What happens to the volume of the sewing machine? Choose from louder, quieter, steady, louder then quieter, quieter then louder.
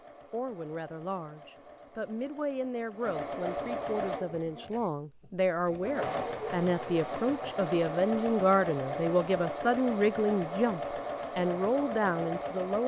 louder.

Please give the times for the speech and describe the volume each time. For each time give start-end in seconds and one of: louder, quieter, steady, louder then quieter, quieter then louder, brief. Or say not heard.
0.3-12.8 louder.